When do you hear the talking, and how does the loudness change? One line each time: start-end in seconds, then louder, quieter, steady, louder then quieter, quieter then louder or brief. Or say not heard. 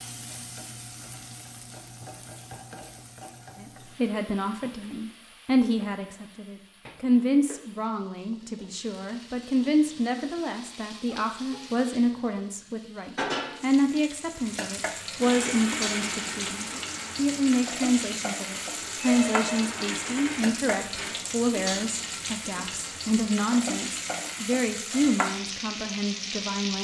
3.5-26.7 steady.